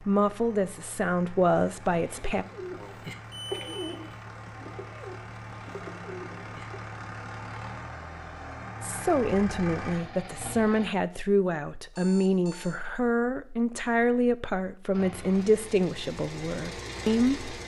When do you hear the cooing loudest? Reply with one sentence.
The loudest moment of the cooing is at 4 seconds.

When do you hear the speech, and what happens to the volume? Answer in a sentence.
You can hear the speech briefly from 0.0 to 2.5 s; and from 8.8 to 17.5 s, at a steady volume.